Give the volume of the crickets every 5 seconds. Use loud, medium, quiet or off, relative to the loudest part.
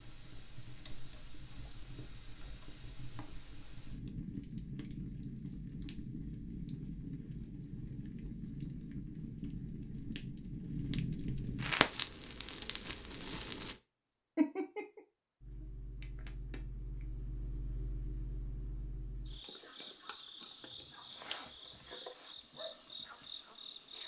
off, off, loud, loud, loud.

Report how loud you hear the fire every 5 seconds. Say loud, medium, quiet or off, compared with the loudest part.
medium, medium, loud, off, off.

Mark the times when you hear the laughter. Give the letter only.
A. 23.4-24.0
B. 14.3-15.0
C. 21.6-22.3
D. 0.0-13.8
B.